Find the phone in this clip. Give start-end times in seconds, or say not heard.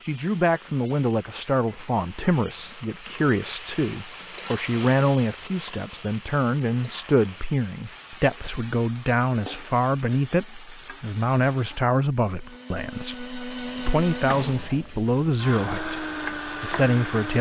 not heard.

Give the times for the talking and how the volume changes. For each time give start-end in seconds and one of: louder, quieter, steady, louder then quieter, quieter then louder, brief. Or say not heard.
0.0-17.3 steady.